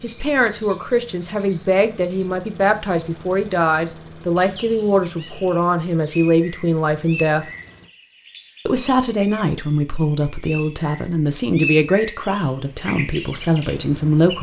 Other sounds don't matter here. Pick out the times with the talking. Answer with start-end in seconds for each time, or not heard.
0.0-7.5, 8.7-14.3.